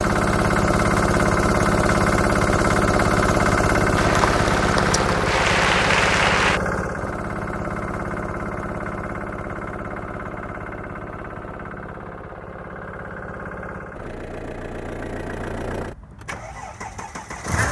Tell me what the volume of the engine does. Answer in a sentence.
The volume of the engine goes down.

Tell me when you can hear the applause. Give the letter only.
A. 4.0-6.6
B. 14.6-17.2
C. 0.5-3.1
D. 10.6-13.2
A.